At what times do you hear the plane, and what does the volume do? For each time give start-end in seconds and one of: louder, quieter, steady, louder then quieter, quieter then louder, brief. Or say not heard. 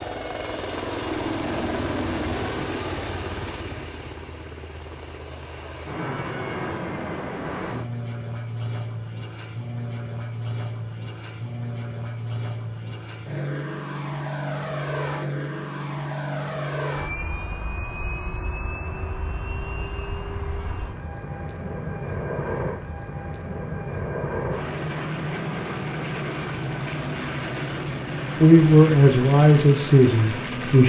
0.0-30.8 steady.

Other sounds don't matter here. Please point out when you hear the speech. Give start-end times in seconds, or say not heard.
28.4-30.8.